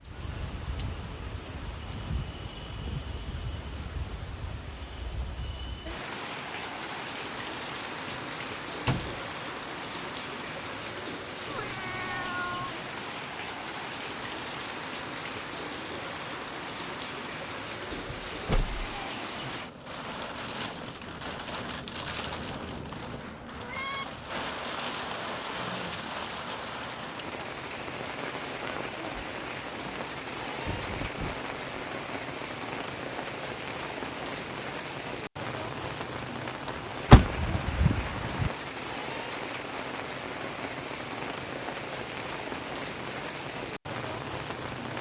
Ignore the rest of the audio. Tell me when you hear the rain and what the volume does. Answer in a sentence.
The rain can be heard from 0.0 to 44.9 s, at a steady volume.